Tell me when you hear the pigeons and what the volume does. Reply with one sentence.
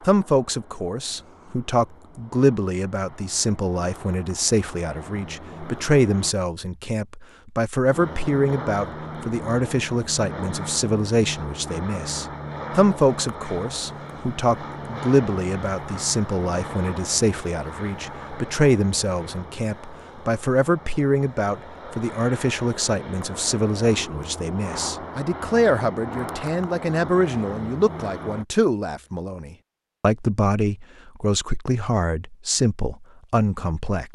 You can't hear the pigeons here.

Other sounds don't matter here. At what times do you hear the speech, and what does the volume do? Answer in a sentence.
You can hear the speech from 0.1 to 34.1 s, at a steady volume.